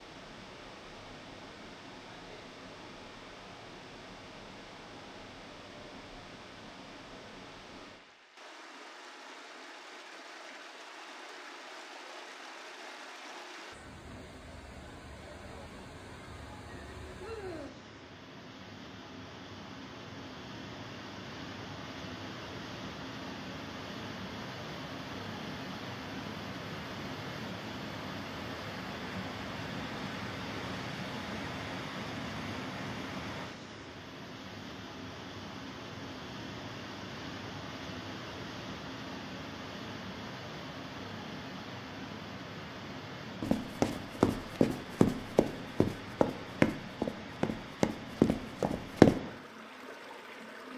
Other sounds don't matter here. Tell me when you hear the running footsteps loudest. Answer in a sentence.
The volume of the running footsteps peaks at 49 seconds.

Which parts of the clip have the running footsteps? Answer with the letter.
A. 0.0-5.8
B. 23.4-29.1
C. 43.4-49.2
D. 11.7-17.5
C.